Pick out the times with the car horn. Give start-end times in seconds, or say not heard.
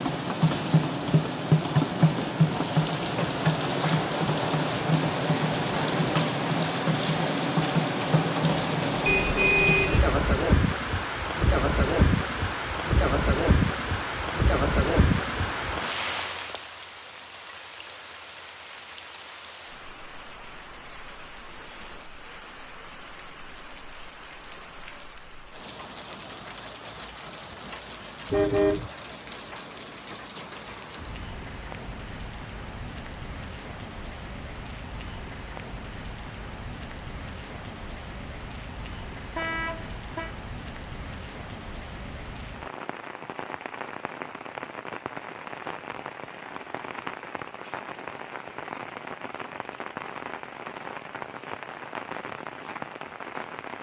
9.1-10.1, 28.3-28.9, 39.3-40.4.